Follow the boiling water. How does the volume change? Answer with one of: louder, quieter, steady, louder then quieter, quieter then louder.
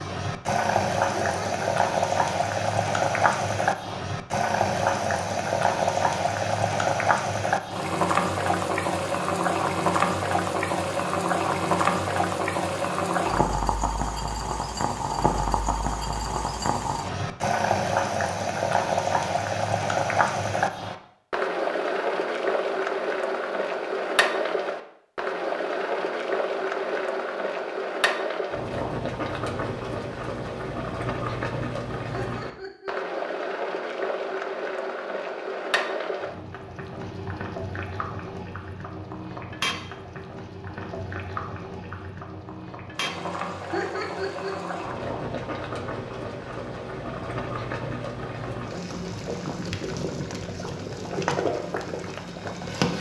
quieter.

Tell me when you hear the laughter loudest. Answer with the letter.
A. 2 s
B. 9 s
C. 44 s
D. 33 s
C.